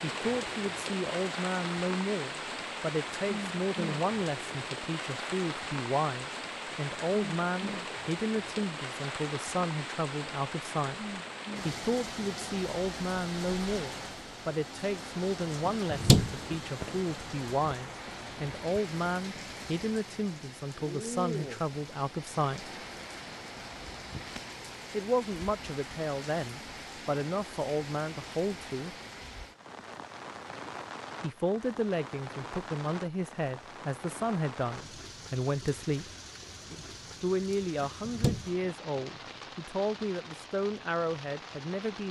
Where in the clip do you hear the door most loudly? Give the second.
16 s.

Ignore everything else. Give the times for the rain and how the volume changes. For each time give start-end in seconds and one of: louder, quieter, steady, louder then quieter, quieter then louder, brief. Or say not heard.
0.0-42.0 quieter.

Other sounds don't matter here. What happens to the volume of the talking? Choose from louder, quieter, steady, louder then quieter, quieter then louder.
steady.